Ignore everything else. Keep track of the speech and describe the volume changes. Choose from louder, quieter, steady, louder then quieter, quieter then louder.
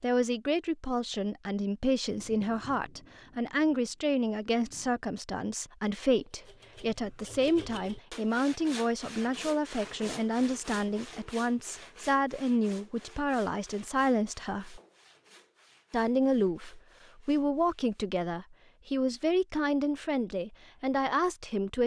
steady.